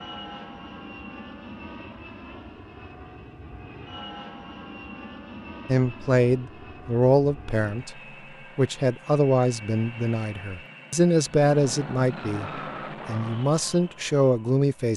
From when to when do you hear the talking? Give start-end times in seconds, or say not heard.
5.7-14.9.